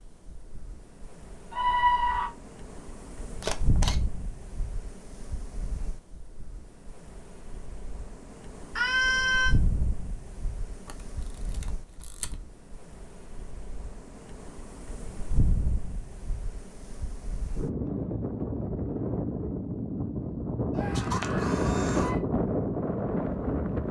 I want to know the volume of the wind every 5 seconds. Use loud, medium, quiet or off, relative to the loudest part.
quiet, quiet, quiet, medium, loud.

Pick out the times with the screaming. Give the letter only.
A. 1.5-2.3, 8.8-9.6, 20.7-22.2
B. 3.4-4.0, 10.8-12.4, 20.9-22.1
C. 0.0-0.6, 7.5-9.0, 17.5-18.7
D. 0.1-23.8
A.